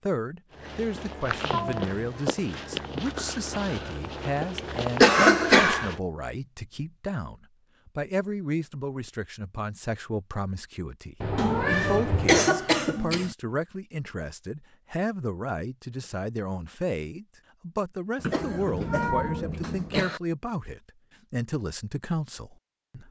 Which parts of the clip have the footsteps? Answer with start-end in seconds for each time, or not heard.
0.5-6.0.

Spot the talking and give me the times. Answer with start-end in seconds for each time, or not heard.
0.0-23.0.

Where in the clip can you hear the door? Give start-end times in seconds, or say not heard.
not heard.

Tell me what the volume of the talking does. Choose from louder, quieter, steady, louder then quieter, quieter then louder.
steady.